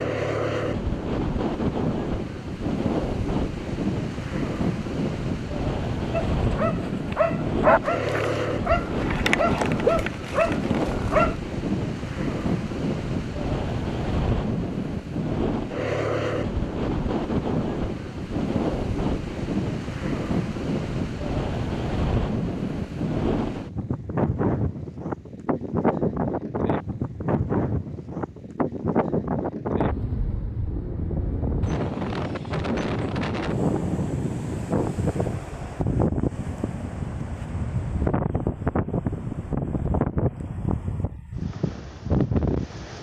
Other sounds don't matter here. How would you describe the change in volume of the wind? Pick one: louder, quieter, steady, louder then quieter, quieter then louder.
steady.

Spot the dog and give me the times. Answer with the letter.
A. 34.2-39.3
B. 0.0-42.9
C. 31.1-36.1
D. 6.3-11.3
D.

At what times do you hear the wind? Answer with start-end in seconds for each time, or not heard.
0.0-42.9.